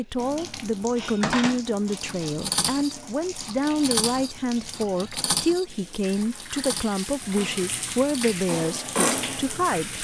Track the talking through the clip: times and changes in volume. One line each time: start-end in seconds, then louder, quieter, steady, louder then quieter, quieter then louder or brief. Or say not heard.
0.0-9.9 steady.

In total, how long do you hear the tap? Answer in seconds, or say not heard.
10 s.